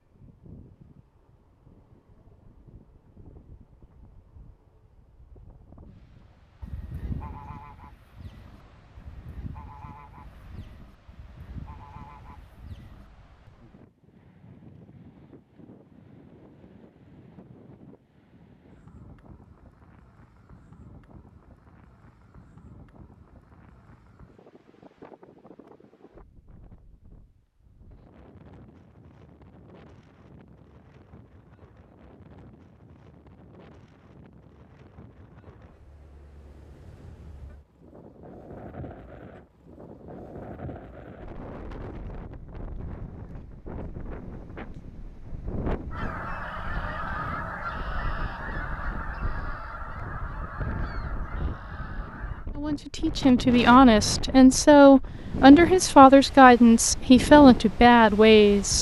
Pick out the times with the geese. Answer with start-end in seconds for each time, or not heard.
6.6-13.1, 45.9-52.5.